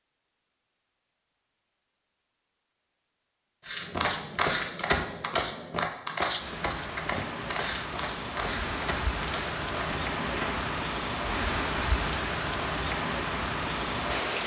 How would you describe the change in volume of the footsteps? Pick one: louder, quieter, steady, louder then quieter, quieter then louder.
quieter.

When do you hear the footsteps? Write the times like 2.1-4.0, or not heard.
3.6-10.7.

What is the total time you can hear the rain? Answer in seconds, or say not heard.
8 s.